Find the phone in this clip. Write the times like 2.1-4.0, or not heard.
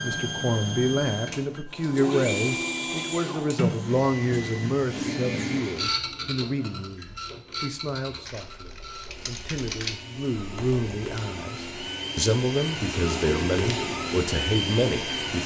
not heard.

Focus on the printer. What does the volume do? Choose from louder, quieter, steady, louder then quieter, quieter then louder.
quieter then louder.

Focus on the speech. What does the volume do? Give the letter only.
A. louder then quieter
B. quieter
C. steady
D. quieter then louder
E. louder
D.